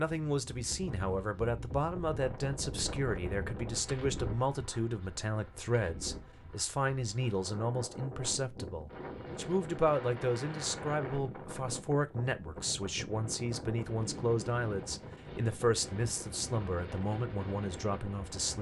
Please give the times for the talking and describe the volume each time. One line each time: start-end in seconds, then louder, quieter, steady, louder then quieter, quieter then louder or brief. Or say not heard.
0.0-18.5 steady.